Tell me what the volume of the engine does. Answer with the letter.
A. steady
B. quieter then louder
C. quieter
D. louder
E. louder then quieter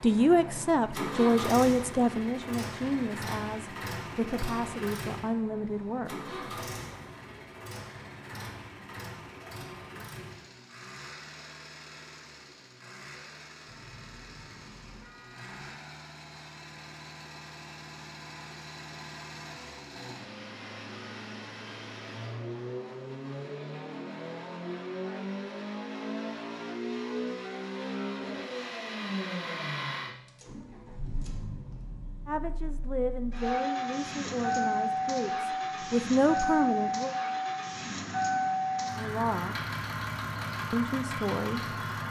B.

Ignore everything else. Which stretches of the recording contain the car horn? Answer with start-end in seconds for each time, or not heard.
13.7-15.6.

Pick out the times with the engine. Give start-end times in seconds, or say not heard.
0.0-42.0.